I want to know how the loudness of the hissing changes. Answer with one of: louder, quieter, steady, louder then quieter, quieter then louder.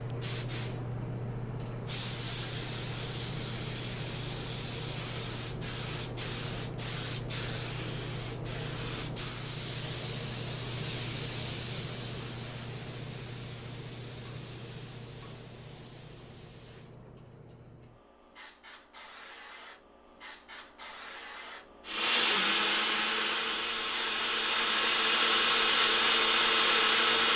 quieter then louder.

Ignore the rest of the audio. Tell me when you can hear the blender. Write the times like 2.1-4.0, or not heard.
21.9-27.3.